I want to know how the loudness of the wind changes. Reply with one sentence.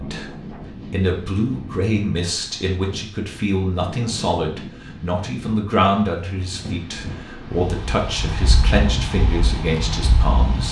The volume of the wind goes up.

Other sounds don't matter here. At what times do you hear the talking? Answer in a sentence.
The talking can be heard from 0.0 to 10.6 s.